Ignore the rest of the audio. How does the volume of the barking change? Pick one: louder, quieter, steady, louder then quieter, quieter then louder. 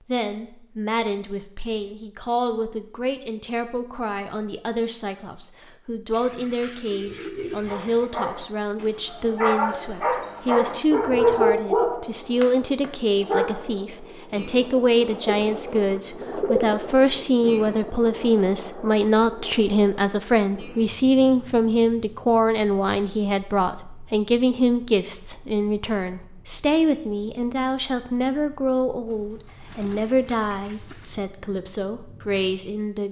louder.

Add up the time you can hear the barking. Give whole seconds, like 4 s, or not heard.
6 s.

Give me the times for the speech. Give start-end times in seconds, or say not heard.
0.1-33.0.